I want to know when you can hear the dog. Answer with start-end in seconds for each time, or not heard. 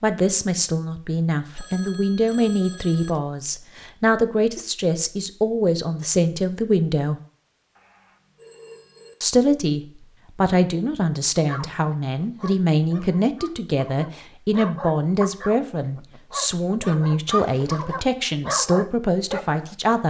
11.3-19.6.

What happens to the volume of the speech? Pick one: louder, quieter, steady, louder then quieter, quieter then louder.
steady.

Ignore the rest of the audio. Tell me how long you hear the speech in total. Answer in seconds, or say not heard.
18 s.